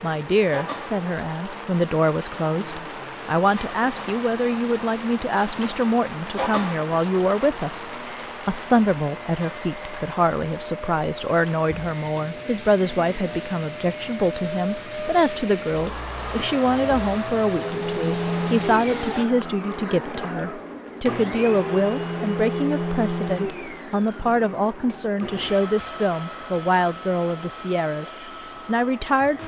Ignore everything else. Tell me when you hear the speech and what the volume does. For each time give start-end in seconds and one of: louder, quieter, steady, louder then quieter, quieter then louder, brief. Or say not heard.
0.0-29.4 steady.